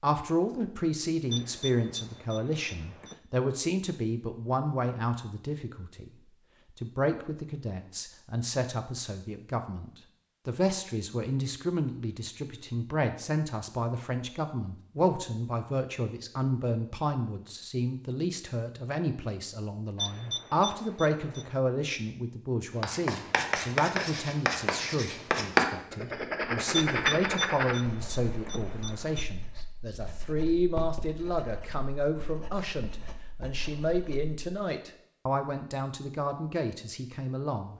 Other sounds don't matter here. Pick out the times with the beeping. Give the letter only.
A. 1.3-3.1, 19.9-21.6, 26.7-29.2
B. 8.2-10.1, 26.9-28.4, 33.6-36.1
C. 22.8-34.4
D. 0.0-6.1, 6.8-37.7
A.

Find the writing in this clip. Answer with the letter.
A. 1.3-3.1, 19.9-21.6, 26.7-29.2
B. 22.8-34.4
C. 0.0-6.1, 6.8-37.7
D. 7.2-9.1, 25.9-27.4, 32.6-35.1
B.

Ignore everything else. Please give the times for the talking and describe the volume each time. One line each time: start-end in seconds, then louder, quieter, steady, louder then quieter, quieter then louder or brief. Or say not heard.
0.0-6.1 steady
6.8-37.7 steady.